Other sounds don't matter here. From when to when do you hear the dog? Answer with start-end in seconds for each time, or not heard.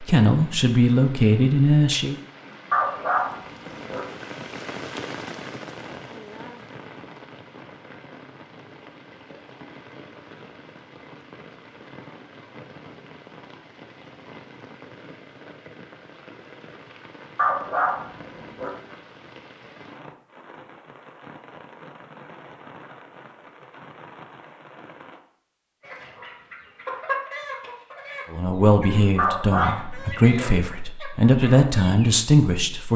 2.7-4.0, 17.4-18.7, 29.1-30.5.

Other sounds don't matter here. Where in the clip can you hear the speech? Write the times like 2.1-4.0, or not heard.
0.0-2.1, 28.3-32.9.